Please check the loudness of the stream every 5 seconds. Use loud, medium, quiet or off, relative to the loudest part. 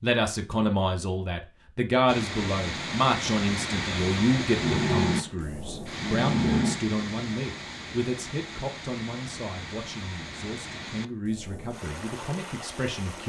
loud, medium, medium.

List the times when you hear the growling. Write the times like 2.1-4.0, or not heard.
4.5-7.0.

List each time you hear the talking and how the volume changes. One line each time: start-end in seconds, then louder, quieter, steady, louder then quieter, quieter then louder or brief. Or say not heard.
0.0-13.2 quieter.